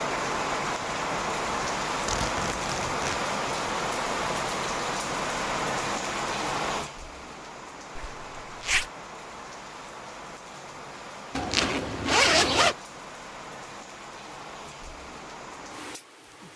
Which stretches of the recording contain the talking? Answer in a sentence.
The talking can't be heard in this clip.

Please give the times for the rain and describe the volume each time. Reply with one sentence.
The rain can be heard from 0.0 to 16.5 s, getting quieter.